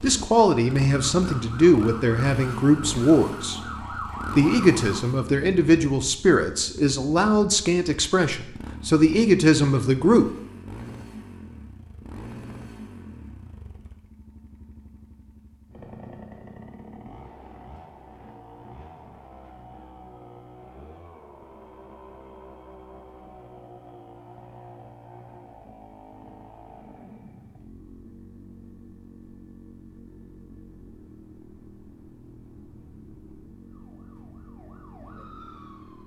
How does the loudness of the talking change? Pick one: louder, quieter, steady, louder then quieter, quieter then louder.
steady.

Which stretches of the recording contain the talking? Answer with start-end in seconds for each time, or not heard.
0.0-3.6, 4.3-10.2.